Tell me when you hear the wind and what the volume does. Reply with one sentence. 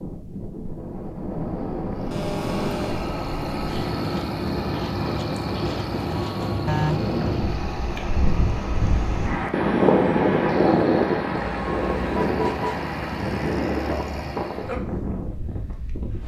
The wind can be heard from 0.0 to 16.2 s, getting louder then quieter.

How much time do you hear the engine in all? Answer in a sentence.
You can hear the engine for 13 seconds altogether.